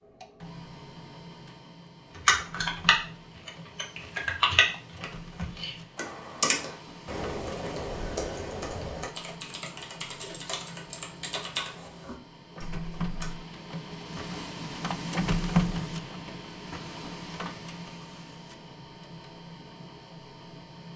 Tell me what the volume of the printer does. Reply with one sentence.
The volume of the printer goes up, then down.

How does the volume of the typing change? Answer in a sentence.
The volume of the typing goes down.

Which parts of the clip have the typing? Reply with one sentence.
You can hear the typing from 2.1 to 13.3 s.